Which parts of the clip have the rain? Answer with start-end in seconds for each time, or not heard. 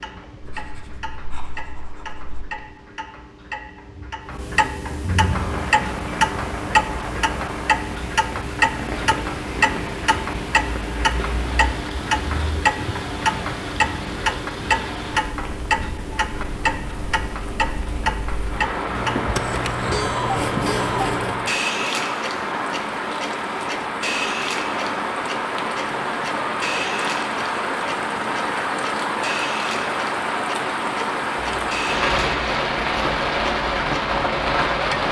5.2-35.0.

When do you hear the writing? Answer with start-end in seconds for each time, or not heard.
0.4-2.5, 18.9-21.5, 31.4-33.2.